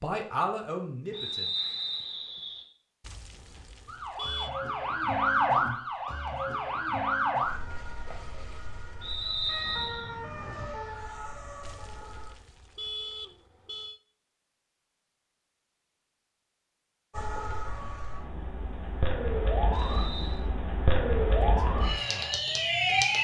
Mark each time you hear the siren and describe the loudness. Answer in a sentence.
The siren can be heard from 3.9 to 12.3 s, getting quieter; and from 17.1 to 23.2 s, getting louder.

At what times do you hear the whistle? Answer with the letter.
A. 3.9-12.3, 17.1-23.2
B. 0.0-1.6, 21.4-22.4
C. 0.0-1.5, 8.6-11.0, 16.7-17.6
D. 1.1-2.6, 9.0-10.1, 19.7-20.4
D.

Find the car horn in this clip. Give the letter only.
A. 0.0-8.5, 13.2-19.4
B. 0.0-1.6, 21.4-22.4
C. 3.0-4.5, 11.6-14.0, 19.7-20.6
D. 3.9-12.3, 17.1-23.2
C.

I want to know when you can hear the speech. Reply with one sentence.
You can hear the speech from 0.0 to 1.6 s and from 21.4 to 22.4 s.